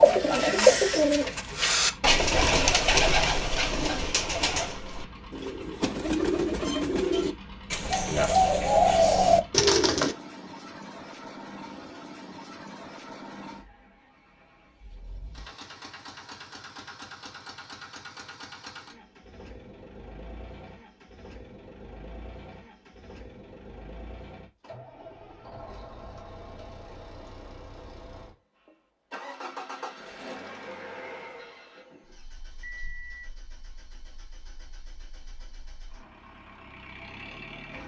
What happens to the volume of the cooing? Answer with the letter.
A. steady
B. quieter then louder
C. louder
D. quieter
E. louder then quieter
B.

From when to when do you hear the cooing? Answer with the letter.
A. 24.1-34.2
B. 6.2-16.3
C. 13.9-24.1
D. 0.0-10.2
D.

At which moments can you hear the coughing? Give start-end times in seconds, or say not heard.
not heard.